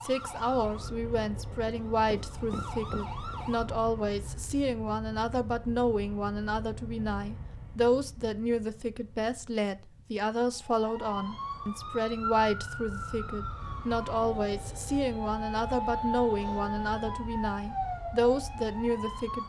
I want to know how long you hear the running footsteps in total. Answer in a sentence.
You can hear the running footsteps for 2 seconds altogether.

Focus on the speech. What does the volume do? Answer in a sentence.
The volume of the speech stays about the same.